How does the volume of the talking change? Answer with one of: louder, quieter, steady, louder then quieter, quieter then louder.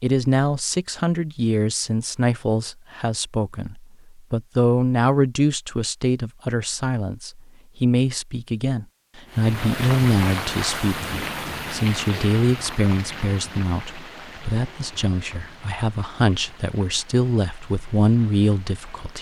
steady.